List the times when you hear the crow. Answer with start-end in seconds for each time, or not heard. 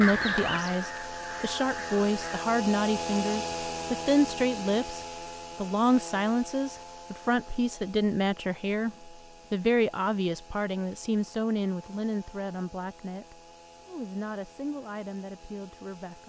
0.0-2.5.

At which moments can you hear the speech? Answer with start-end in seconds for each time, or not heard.
0.0-16.2.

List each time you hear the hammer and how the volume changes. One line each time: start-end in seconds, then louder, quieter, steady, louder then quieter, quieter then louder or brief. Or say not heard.
not heard.